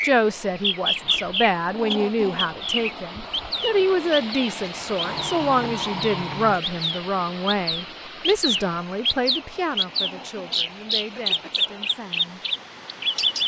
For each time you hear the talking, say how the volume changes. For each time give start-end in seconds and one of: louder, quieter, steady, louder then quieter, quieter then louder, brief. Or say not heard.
0.0-12.4 quieter.